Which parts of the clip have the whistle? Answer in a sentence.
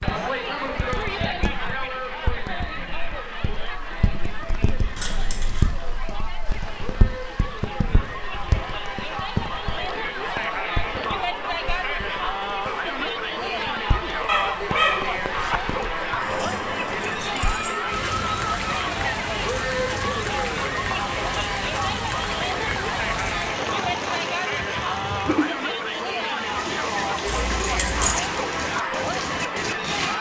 The whistle can't be heard in this clip.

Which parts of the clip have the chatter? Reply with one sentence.
You can hear the chatter from 0.0 to 30.1 s.